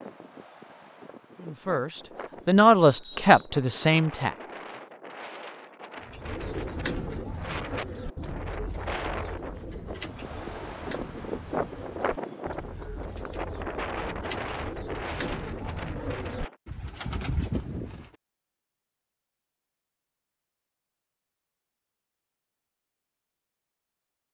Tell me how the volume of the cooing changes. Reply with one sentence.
The volume of the cooing goes down, then up.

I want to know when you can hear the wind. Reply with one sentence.
You can hear the wind from 0.0 to 16.6 s.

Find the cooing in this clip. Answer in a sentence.
The cooing can be heard from 6.0 to 18.1 s.